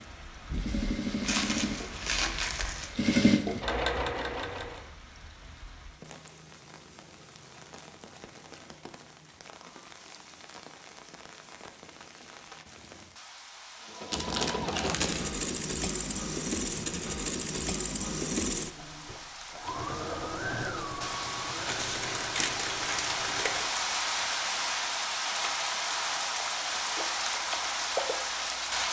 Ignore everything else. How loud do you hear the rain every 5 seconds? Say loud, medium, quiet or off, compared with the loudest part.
quiet, quiet, quiet, quiet, loud, loud.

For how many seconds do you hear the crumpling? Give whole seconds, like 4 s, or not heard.
5 s.